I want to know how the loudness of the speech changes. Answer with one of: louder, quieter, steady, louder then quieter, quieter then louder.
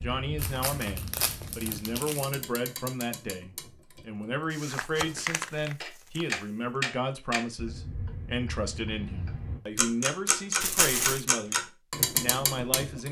steady.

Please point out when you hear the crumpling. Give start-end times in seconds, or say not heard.
0.3-2.4, 4.5-6.4, 10.6-11.2.